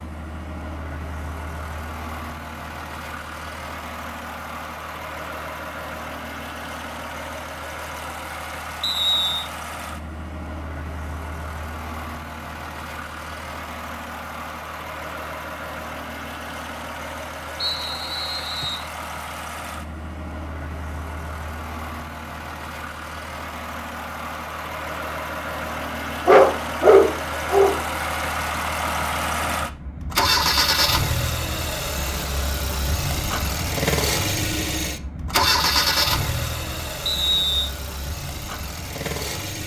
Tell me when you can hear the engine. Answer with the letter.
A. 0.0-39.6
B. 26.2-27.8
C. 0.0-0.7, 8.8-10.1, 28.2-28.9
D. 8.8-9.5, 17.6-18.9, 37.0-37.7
A.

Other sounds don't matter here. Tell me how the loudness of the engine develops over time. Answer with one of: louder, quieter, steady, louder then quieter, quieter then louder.
louder.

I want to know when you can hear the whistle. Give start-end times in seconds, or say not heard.
8.8-9.5, 17.6-18.9, 37.0-37.7.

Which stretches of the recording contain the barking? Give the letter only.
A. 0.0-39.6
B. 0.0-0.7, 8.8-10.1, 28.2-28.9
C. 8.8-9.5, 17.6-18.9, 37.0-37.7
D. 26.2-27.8
D.